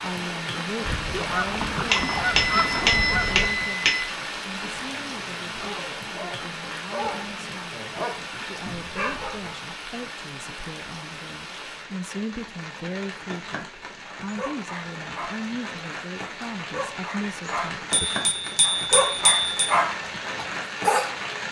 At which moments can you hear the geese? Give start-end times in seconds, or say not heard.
0.8-3.6.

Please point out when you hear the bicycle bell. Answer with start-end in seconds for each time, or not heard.
1.9-4.0, 17.9-19.7.